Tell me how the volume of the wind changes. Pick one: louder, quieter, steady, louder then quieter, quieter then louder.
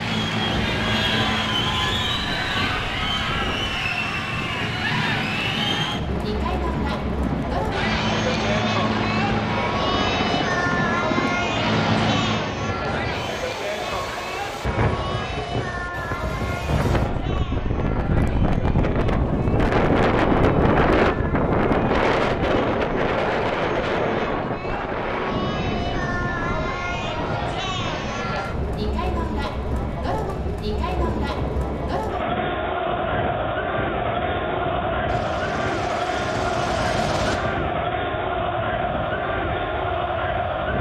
louder then quieter.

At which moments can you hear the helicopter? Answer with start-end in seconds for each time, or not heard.
0.0-12.4, 35.0-37.4.